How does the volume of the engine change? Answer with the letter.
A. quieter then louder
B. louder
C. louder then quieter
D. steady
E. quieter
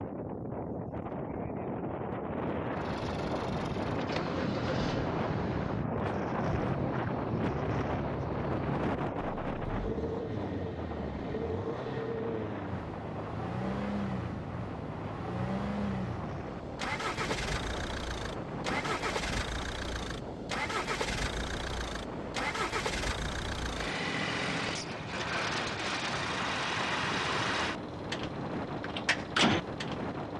B.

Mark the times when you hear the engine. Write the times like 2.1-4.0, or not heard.
2.7-30.3.